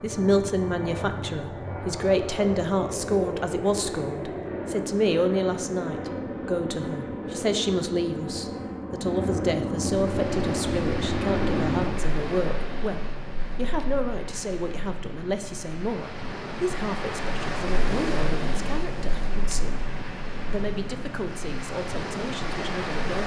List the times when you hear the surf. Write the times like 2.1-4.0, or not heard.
9.9-23.2.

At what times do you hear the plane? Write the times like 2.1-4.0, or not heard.
0.0-12.0.